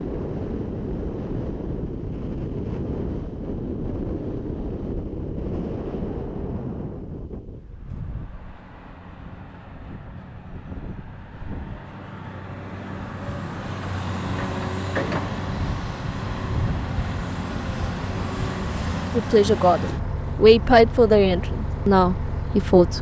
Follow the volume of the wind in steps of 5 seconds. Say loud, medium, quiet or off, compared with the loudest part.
loud, loud, medium, off, off.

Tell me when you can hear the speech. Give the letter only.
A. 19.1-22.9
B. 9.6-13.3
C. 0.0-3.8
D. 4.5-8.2
A.